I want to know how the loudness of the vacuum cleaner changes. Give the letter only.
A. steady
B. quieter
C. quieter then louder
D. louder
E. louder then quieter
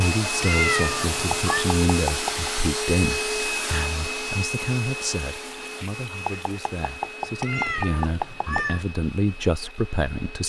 B.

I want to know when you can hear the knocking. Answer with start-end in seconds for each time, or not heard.
1.3-2.5, 6.2-8.7.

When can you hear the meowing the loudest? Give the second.
1 s.